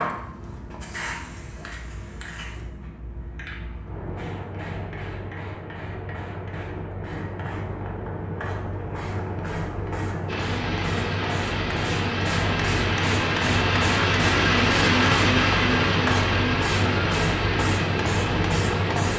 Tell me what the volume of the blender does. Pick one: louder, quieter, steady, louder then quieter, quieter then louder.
louder then quieter.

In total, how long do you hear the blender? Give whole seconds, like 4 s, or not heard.
9 s.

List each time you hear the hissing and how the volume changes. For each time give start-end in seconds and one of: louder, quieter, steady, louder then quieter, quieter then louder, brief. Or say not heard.
0.0-19.1 louder.